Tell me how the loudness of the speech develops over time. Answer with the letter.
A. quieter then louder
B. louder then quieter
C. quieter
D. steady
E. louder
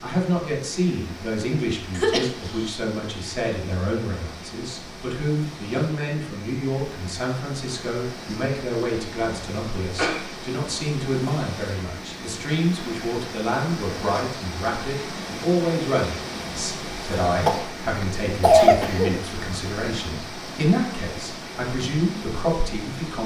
D.